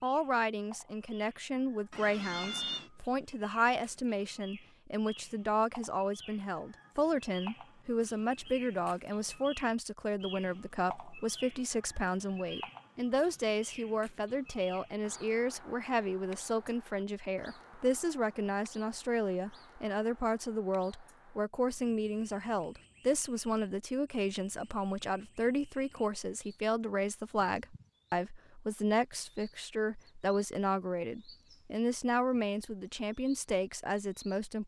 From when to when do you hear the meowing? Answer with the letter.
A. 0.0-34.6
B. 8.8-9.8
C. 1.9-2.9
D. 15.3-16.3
C.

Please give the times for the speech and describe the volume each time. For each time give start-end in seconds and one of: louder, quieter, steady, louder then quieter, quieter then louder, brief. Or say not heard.
0.0-34.6 steady.